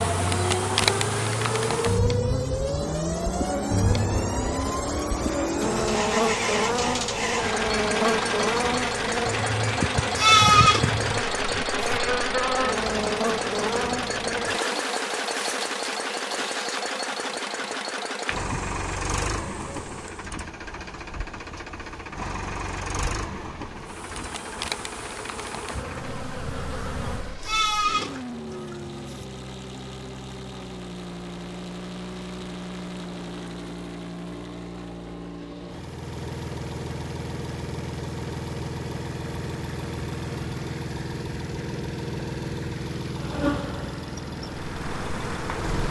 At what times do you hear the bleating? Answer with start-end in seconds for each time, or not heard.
10.2-12.0, 27.4-29.2.